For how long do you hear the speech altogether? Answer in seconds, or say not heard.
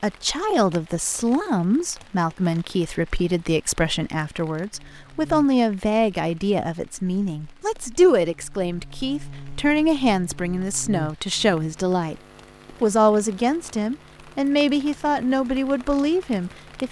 16 s.